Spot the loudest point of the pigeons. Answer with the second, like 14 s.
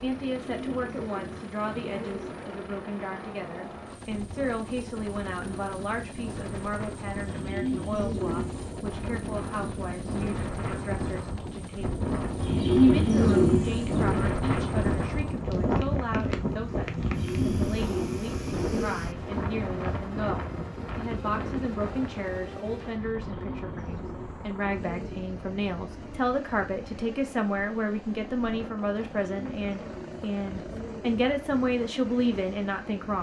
13 s.